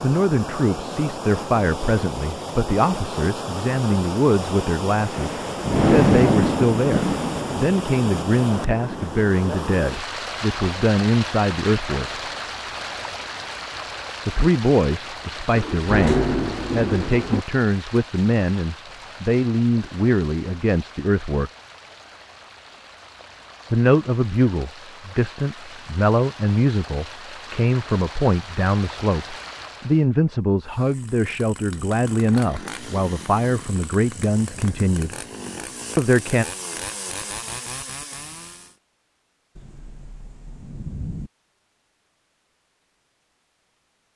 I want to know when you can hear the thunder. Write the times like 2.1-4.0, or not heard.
5.0-9.2, 15.6-17.4, 39.5-41.3.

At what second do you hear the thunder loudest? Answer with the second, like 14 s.
6 s.